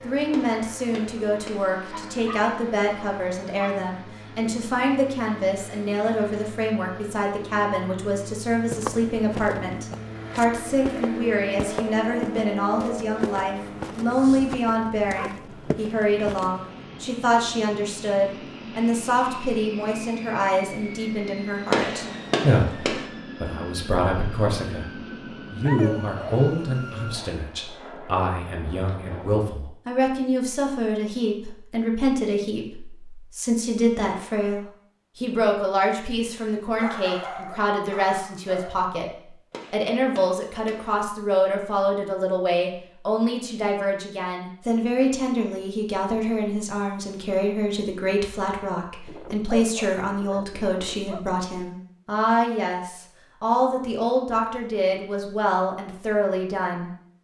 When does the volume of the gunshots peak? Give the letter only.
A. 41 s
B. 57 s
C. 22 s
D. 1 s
C.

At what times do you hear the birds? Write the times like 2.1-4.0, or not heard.
not heard.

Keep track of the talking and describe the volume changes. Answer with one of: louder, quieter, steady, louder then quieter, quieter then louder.
steady.